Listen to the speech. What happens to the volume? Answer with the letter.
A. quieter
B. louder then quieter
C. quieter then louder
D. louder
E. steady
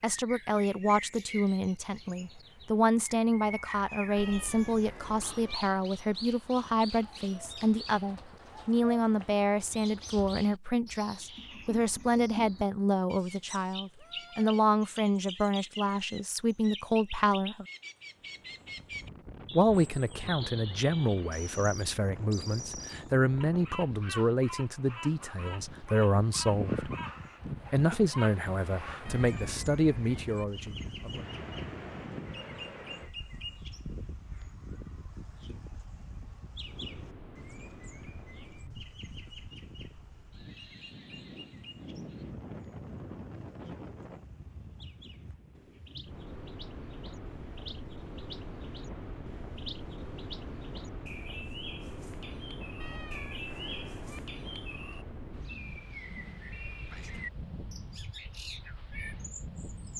E.